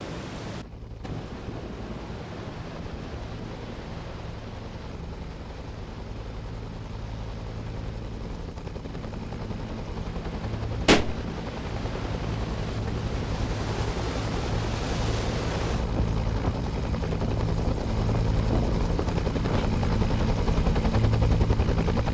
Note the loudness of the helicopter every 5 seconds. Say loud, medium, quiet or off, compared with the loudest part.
quiet, quiet, medium, loud, loud.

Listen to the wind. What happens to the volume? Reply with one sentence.
The loudness of the wind goes down, then up.